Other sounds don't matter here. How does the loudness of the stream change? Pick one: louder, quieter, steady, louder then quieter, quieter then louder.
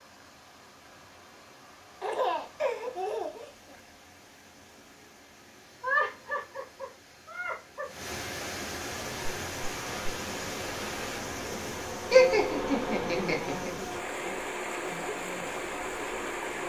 louder.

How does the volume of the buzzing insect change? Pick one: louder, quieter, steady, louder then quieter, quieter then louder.
louder then quieter.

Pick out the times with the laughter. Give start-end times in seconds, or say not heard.
2.0-3.8, 5.8-7.8, 12.1-13.7.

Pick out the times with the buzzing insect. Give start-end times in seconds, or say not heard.
9.1-16.6.